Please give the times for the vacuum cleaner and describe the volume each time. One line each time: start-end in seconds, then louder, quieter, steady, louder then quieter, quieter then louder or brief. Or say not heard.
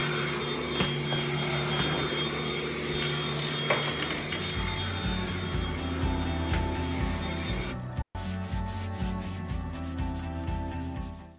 0.0-7.8 quieter.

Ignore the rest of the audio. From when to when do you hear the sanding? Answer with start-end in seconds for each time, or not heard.
4.3-11.3.